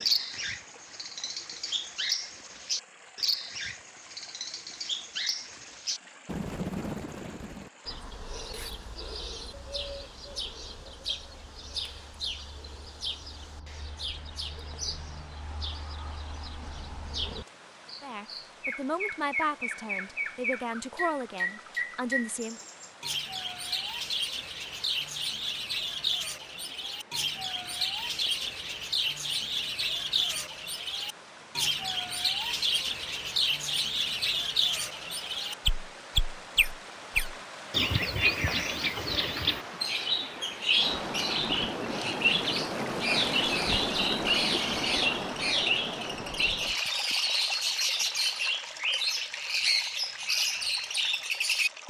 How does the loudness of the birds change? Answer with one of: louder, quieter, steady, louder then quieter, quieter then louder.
louder.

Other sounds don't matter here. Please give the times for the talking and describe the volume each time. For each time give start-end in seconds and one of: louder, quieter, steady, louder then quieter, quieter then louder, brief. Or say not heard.
18.0-22.6 steady.